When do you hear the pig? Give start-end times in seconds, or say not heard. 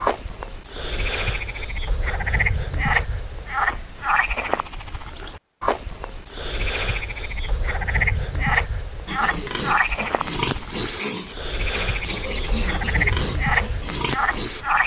9.1-14.7.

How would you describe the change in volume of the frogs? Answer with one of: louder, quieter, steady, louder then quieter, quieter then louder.
steady.